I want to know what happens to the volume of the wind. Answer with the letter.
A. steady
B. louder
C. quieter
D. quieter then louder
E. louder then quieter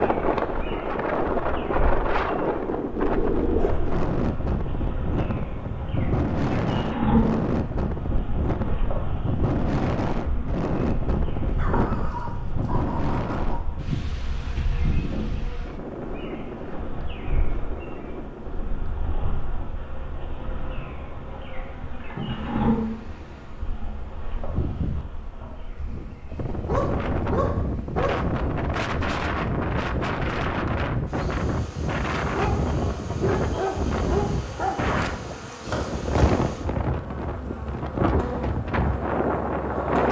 D.